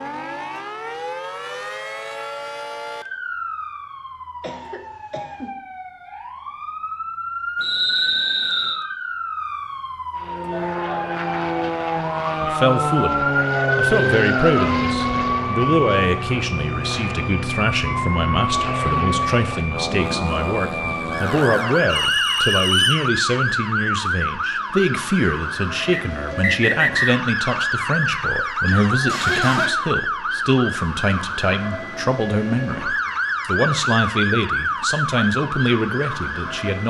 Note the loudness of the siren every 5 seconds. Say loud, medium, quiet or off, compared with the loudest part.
medium, medium, loud, loud, loud, loud, loud, loud.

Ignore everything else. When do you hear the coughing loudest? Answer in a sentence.
The volume of the coughing peaks at 29 seconds.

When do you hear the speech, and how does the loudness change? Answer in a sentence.
You can hear the speech from 12.4 to 36.8 s, at a steady volume.